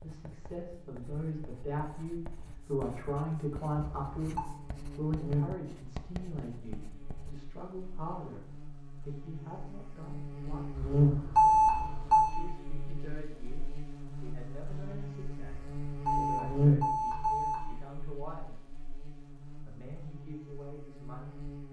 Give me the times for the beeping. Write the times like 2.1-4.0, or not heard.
3.8-4.4, 10.8-12.3, 15.5-17.6.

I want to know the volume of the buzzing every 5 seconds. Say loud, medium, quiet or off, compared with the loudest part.
quiet, medium, loud, loud, quiet.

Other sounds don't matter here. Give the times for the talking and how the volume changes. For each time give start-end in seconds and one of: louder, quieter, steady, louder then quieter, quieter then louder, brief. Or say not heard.
0.0-18.6 quieter
19.4-21.6 brief.